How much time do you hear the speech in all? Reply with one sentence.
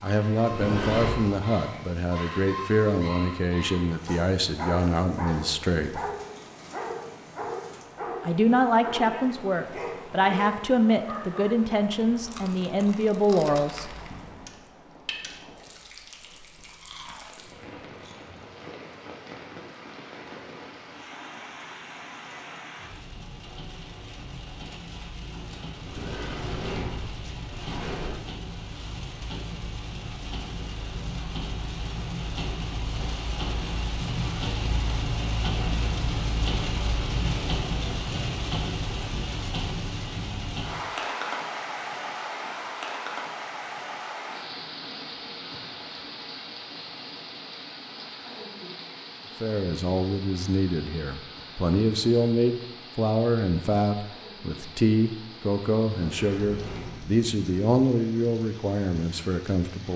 The speech can be heard for 22 seconds in total.